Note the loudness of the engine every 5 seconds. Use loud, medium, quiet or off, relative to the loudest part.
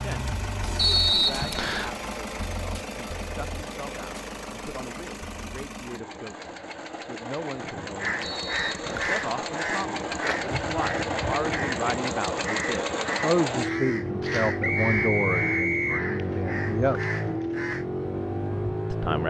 medium, medium, loud, loud.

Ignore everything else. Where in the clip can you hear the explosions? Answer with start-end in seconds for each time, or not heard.
not heard.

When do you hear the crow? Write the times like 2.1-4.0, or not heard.
8.0-17.9.